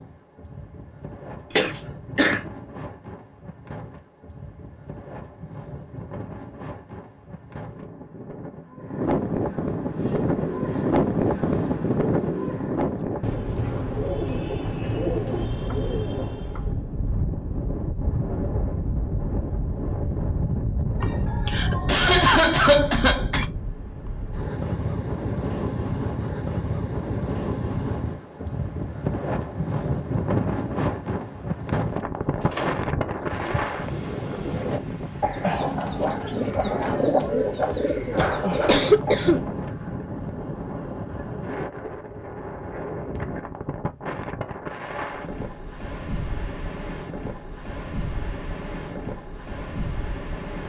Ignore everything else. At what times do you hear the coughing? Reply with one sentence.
The coughing can be heard from 1.5 to 2.5 s, from 21.0 to 23.4 s and from 38.1 to 39.4 s.